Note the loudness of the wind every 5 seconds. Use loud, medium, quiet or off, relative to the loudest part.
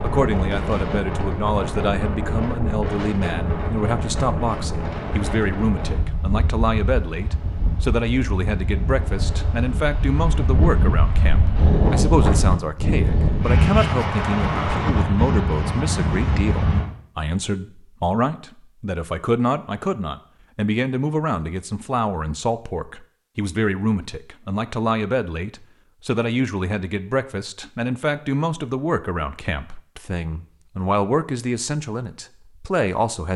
medium, medium, loud, loud, off, off, off.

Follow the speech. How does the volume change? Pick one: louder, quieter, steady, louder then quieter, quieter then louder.
steady.